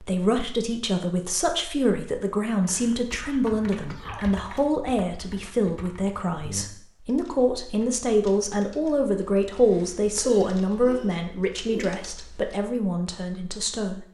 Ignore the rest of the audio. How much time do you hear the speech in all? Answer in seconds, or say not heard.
14 s.